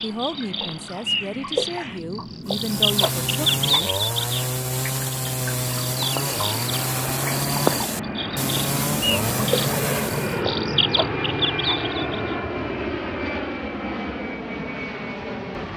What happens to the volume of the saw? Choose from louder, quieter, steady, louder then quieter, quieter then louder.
steady.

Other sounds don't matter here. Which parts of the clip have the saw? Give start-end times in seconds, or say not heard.
2.5-10.4.